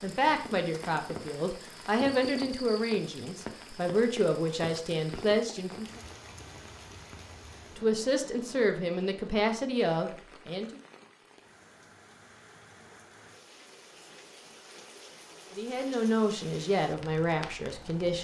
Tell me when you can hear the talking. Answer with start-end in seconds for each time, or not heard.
0.0-6.0, 7.8-10.8, 15.6-18.1.